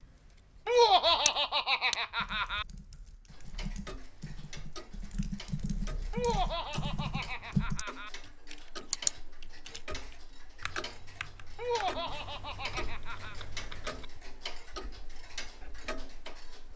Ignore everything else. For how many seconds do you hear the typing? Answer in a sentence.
You can hear the typing for 12 seconds altogether.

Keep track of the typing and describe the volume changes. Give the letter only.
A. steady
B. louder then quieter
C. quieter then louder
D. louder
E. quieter
B.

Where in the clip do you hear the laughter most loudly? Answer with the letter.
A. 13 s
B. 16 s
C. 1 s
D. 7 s
C.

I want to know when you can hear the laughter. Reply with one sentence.
The laughter can be heard from 0.7 to 2.6 s, from 6.1 to 8.1 s and from 11.6 to 13.3 s.